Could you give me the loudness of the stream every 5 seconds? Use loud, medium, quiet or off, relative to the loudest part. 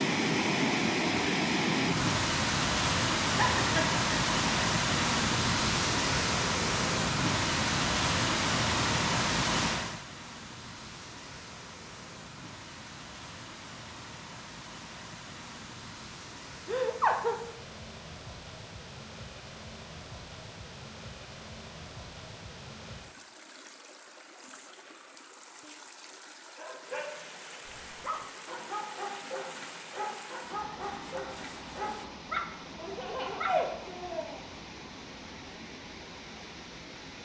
loud, loud, quiet, quiet, quiet, quiet, quiet, quiet.